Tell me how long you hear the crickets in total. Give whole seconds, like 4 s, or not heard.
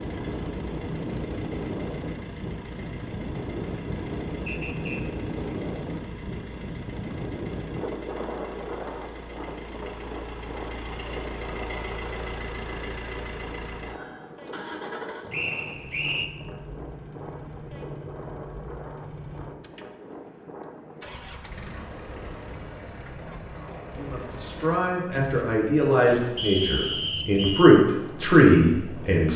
not heard.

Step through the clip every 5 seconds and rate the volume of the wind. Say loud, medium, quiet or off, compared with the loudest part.
loud, loud, medium, medium, medium, medium.